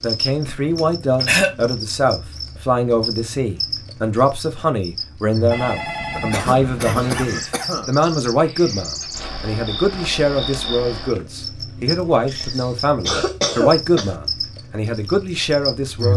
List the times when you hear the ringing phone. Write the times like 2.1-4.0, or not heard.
5.5-7.8.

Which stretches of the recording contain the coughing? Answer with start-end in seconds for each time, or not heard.
0.8-1.6, 6.2-7.9, 12.3-14.2.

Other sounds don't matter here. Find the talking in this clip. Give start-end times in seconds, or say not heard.
0.0-16.1.